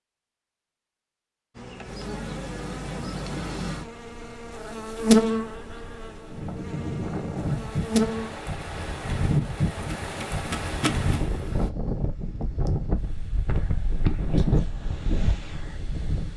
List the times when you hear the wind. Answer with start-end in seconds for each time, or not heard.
6.3-16.3.